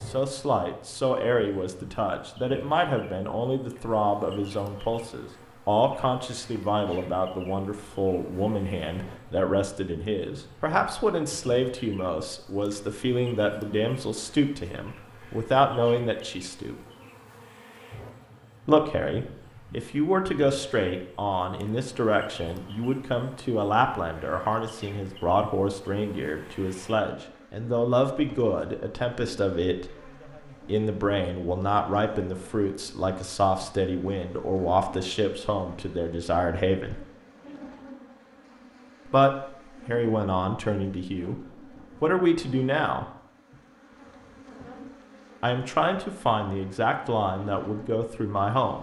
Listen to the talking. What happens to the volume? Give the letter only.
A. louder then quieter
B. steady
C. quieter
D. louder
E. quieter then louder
B.